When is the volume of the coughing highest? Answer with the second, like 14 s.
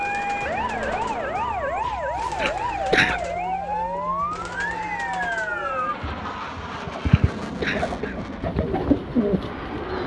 3 s.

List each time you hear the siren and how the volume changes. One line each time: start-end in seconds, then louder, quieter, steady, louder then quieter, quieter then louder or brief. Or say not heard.
0.0-6.0 steady.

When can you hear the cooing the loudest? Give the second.
9 s.